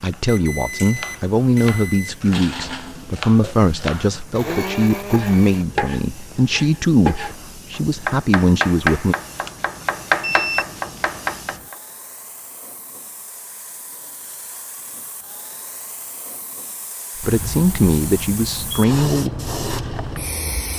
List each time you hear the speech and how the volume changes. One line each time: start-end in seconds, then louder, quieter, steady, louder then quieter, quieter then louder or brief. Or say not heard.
0.0-9.2 steady
17.2-19.3 brief.